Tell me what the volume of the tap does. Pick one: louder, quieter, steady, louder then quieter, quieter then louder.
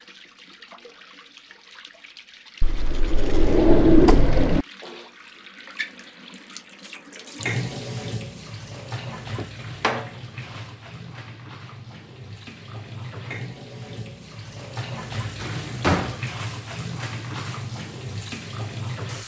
louder.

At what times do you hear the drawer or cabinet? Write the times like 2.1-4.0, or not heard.
2.6-4.7, 9.3-10.1, 15.4-16.2.